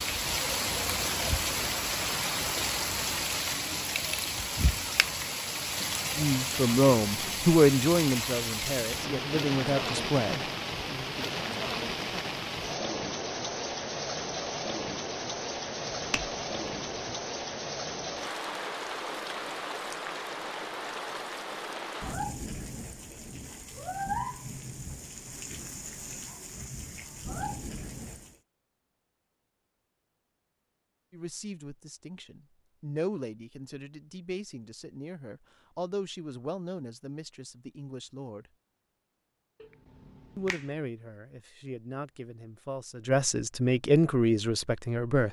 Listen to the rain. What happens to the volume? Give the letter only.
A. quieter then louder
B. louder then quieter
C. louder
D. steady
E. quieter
E.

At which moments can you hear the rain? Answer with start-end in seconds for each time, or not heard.
0.0-28.4.